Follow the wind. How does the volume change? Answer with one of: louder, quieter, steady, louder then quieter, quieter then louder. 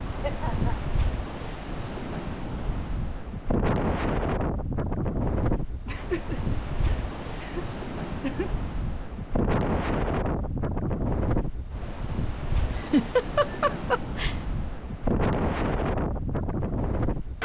steady.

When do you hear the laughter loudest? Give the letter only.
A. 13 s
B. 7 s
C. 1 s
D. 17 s
A.